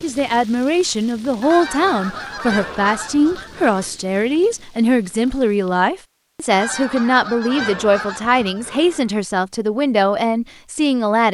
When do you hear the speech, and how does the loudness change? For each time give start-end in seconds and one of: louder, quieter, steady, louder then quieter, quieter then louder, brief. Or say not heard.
0.0-11.2 steady.